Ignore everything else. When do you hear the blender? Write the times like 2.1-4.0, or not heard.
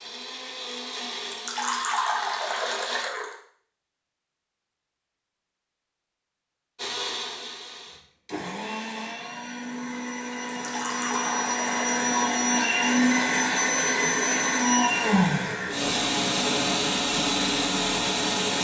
0.0-3.0, 6.8-18.6.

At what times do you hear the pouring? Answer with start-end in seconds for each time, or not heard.
1.3-3.4, 10.6-12.1.